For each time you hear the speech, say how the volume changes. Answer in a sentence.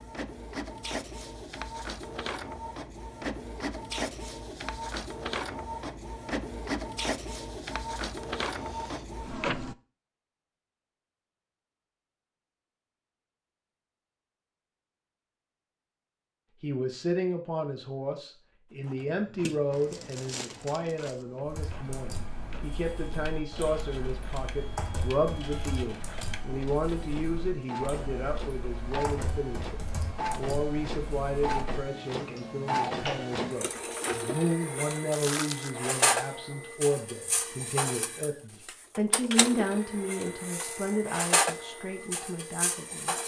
The speech can be heard from 16.6 to 43.2 s, at a steady volume.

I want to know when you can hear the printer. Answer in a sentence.
The printer can be heard from 0.0 to 9.8 s and from 18.7 to 43.2 s.